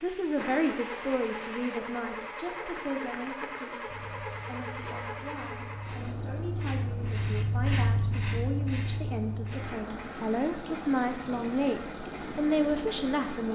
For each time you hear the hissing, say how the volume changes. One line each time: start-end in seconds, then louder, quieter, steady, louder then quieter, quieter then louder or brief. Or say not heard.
0.0-13.5 louder then quieter.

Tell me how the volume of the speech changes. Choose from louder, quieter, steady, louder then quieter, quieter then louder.
quieter then louder.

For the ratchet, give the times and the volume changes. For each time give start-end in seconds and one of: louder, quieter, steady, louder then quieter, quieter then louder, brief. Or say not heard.
not heard.